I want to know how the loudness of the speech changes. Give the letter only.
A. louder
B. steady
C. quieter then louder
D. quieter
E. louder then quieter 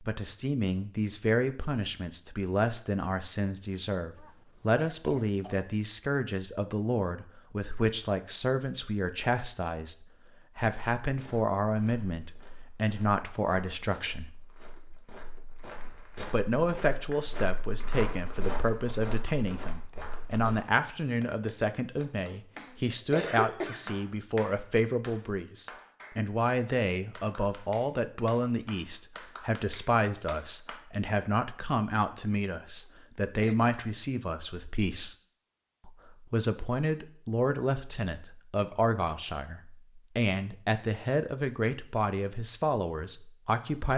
B.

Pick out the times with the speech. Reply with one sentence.
The speech can be heard from 0.0 to 14.3 s, from 16.3 to 35.1 s and from 35.9 to 43.9 s.